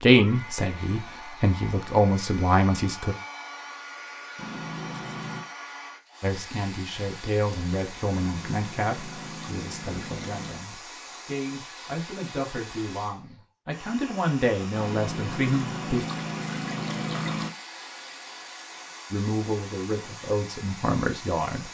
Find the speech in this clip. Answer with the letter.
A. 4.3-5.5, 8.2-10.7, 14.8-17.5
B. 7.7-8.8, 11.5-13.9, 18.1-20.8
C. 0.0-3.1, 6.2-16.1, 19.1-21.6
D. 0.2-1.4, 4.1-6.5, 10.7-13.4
C.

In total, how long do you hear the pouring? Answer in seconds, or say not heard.
6 s.